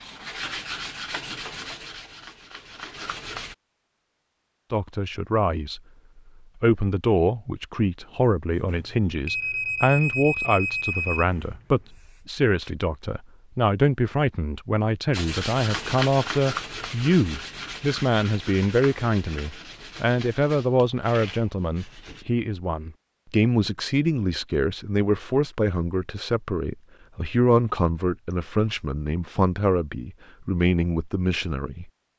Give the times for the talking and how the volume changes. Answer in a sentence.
You can hear the talking briefly from 4.7 to 5.8 s; and from 6.6 to 32.1 s, at a steady volume.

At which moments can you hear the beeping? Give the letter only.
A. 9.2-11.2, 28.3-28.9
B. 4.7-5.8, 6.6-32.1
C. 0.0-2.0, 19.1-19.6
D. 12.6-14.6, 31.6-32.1
A.